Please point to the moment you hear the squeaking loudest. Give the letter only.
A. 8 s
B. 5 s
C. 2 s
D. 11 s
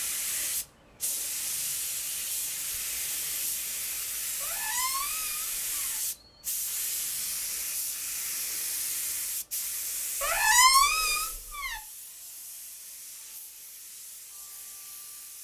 D.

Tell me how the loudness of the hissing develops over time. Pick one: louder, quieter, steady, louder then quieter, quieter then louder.
quieter.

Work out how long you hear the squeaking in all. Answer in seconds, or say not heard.
3 s.